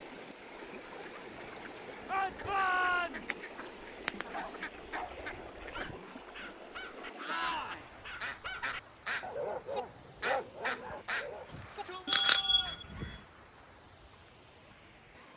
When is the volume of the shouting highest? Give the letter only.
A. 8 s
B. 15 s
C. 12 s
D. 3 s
D.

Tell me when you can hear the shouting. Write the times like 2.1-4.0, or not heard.
2.0-3.5, 7.2-7.9, 11.4-12.8.